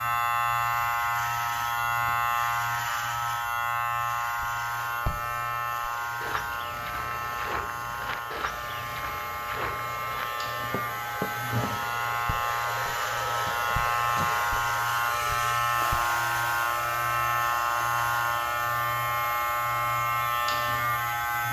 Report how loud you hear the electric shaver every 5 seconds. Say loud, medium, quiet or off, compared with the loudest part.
loud, medium, loud, loud, loud.